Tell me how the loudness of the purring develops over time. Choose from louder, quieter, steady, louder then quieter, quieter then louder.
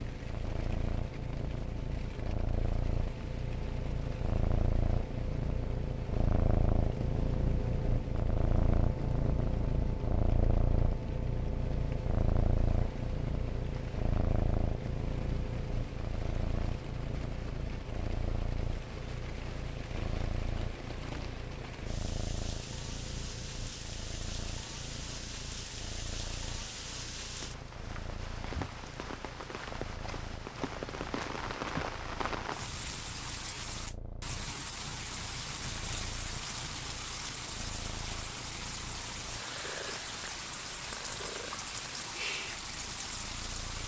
quieter.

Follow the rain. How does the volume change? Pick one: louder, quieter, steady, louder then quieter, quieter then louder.
louder.